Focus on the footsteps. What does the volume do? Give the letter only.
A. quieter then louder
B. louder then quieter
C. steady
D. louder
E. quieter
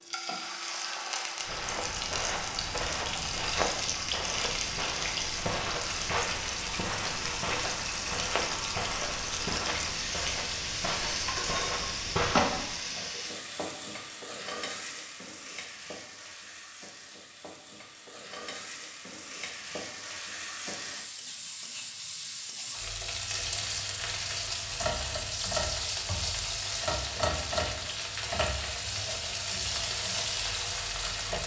C.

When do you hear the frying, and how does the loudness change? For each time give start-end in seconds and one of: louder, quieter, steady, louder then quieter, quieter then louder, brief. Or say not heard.
0.0-31.4 quieter then louder.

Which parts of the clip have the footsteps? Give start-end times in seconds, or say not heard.
1.4-12.8.